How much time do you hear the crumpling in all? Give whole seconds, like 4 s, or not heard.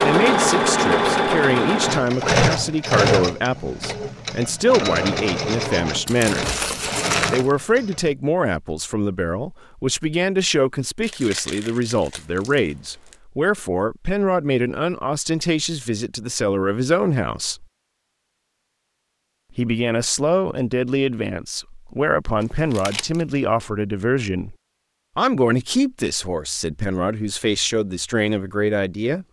5 s.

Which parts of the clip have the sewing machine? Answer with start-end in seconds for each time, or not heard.
0.0-8.2.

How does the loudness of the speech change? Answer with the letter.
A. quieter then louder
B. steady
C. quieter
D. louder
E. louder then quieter
B.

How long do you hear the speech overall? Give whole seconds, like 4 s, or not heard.
26 s.